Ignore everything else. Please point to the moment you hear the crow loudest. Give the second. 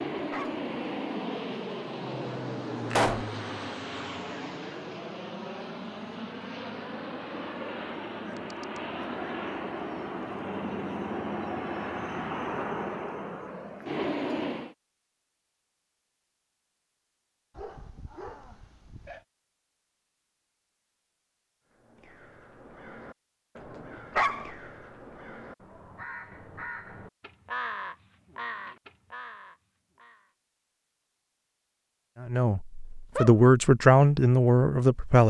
28 s.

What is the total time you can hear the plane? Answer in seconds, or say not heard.
15 s.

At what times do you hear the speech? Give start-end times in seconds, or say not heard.
32.2-35.2.